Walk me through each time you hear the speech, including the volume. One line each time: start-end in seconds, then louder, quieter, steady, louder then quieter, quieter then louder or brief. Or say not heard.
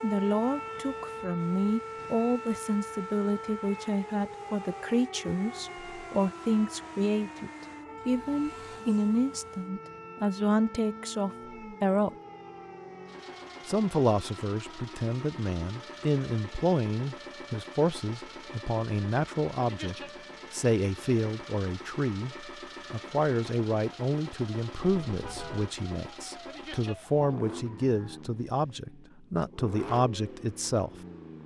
0.0-12.2 steady
13.7-30.9 steady.